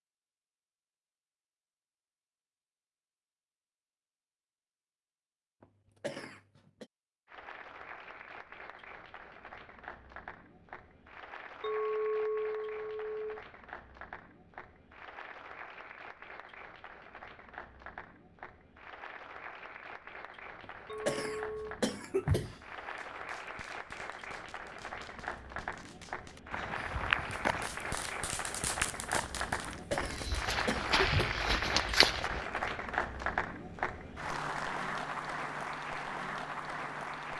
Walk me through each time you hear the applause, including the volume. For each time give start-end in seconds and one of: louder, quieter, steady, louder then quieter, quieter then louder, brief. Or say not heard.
7.2-37.3 louder.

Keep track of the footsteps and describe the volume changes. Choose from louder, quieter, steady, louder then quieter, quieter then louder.
quieter then louder.